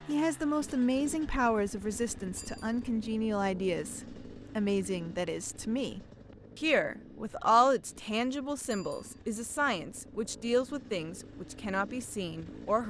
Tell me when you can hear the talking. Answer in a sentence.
The talking can be heard from 0.1 to 12.8 s.